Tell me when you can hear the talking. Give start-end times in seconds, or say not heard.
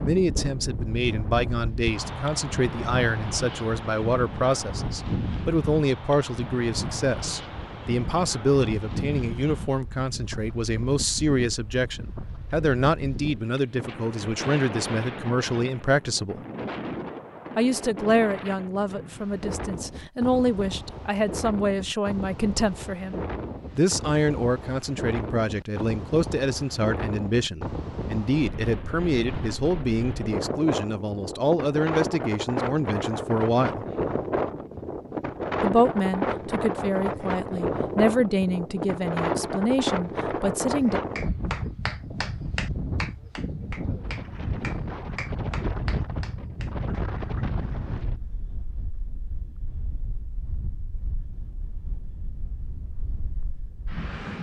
0.0-16.4, 17.6-33.9, 35.6-41.0.